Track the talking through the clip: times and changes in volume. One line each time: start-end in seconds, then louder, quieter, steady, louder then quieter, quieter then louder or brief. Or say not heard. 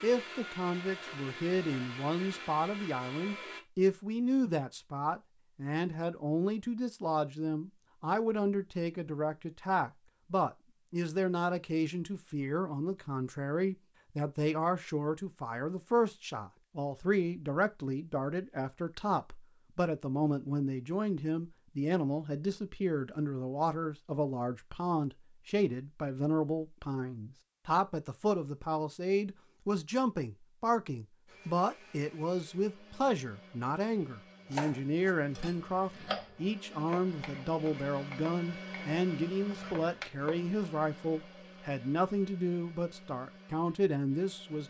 0.0-44.6 steady.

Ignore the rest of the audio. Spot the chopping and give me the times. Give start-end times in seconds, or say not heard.
34.5-40.4.